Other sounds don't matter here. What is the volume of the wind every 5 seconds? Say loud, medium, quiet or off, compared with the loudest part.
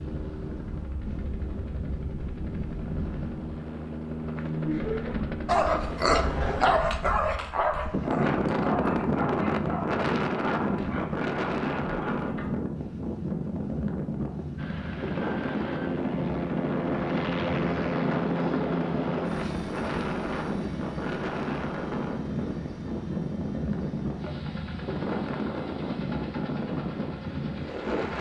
medium, loud, loud, loud, loud, loud.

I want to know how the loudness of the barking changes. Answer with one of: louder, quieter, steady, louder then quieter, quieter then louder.
quieter.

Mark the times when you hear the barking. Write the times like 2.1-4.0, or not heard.
5.5-12.5.